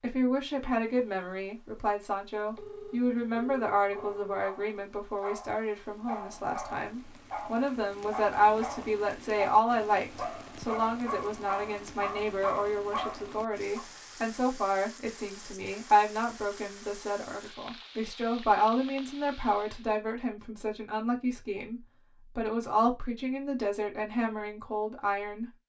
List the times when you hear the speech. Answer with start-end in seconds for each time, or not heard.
0.0-25.5.